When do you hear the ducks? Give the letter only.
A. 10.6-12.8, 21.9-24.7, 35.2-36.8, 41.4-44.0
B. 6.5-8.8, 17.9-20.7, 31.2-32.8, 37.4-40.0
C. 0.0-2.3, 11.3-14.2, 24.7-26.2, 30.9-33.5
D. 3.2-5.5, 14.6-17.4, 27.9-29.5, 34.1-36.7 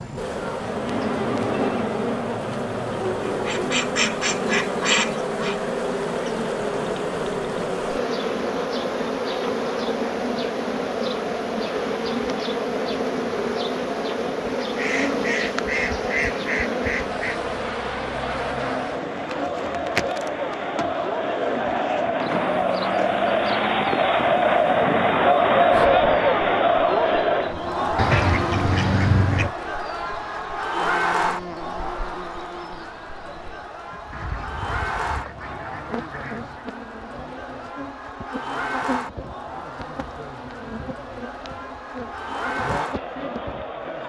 D.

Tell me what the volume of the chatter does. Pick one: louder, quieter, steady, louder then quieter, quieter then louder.
louder then quieter.